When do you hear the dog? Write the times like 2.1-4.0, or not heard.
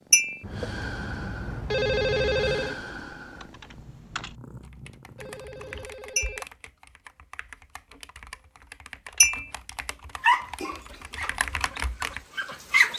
10.2-12.9.